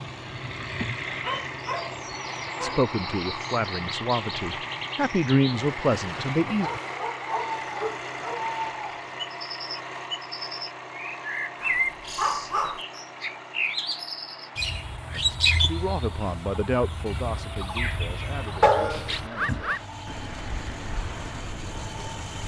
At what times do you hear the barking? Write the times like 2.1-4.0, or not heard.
1.2-2.9, 6.5-8.4, 11.6-12.8, 18.6-19.7.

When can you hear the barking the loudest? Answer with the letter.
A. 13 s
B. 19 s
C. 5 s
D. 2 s
B.